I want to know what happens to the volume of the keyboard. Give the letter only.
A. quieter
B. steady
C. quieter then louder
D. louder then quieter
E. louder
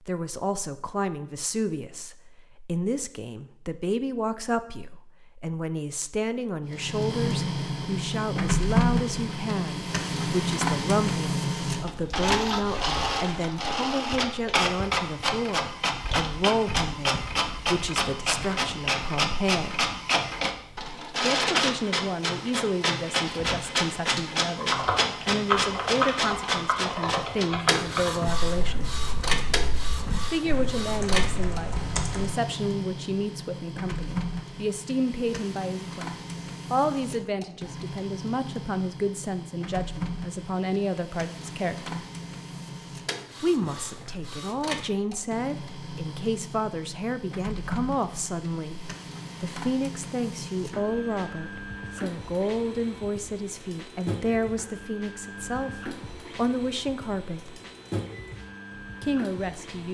A.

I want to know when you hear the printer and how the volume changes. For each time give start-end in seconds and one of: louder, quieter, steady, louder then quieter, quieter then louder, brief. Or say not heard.
6.7-59.8 quieter.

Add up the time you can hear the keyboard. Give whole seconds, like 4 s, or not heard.
8 s.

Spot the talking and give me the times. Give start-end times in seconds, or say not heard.
0.1-19.9, 21.2-29.0, 30.1-42.0, 43.4-57.6, 59.0-59.8.